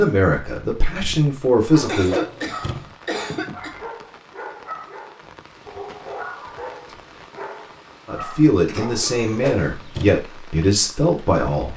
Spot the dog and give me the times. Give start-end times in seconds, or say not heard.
1.6-9.1.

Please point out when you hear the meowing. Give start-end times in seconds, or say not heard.
1.9-3.0, 9.1-10.2.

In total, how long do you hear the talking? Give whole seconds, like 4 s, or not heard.
6 s.